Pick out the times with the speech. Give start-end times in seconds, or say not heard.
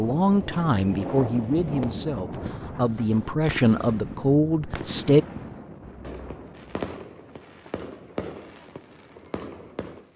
0.0-5.2.